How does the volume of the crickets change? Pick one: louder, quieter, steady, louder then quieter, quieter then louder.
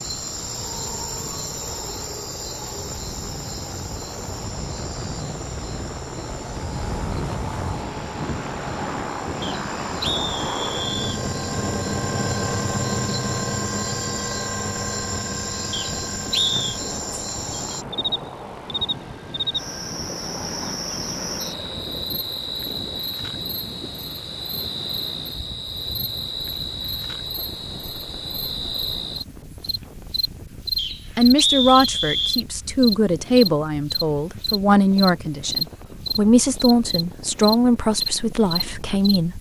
louder.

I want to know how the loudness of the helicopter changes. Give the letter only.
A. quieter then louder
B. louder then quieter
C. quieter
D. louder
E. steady
B.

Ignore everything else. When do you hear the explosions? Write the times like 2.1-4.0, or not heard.
not heard.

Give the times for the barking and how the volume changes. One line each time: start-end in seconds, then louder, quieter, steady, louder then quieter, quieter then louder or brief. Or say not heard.
not heard.